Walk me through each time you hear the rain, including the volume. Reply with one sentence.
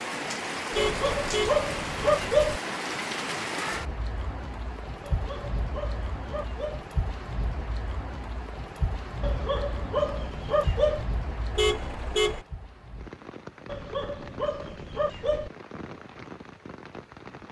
You can hear the rain from 0.0 to 17.4 s, getting quieter.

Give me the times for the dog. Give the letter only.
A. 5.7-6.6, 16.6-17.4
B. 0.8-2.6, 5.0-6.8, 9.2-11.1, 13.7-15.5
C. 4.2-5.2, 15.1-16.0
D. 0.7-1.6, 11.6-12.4
B.